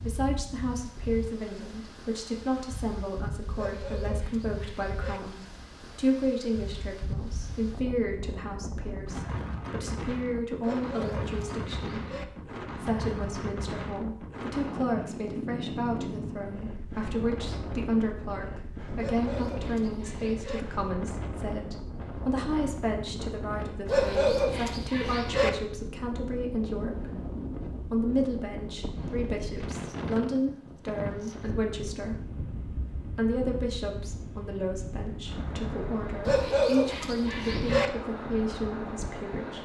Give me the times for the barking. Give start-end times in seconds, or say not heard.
3.5-5.2, 10.6-12.2, 18.9-20.6, 23.9-25.5, 36.2-37.9.